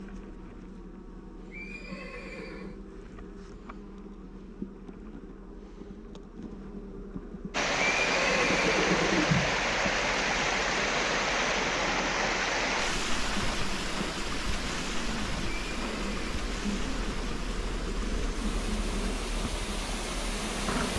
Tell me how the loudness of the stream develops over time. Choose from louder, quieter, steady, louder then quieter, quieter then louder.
quieter.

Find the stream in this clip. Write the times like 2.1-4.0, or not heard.
7.5-20.9.